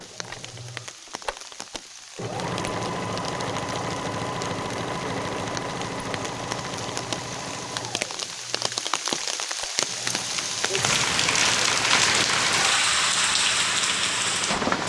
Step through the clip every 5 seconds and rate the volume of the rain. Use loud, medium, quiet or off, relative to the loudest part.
quiet, medium, loud.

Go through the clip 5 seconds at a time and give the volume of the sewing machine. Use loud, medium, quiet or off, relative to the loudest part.
loud, loud, medium.